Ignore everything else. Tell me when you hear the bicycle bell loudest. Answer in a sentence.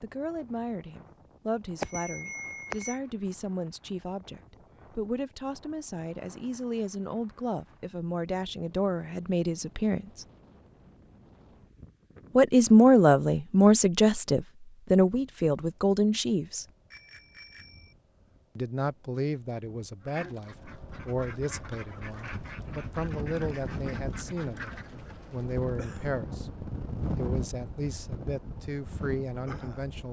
The volume of the bicycle bell peaks at 2 seconds.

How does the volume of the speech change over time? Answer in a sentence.
The loudness of the speech goes up, then down.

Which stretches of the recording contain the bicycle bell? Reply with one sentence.
The bicycle bell can be heard from 1.8 to 3.0 s and from 16.9 to 17.9 s.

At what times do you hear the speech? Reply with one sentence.
You can hear the speech from 0.0 to 10.2 s, from 12.3 to 16.6 s and from 18.6 to 30.0 s.